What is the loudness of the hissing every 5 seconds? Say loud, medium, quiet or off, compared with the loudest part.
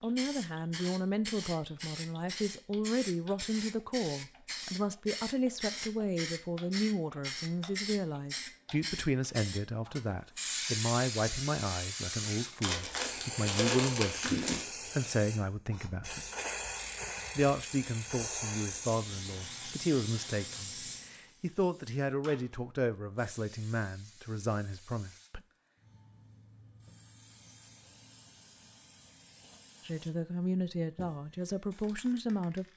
loud, loud, loud, loud, medium, quiet, quiet.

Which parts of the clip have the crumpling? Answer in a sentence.
The crumpling can be heard from 12.6 to 14.7 s.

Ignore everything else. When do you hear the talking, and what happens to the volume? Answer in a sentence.
The talking can be heard from 0.0 to 16.3 s, at a steady volume; from 17.4 to 25.4 s, at a steady volume; and briefly from 29.9 to 32.6 s.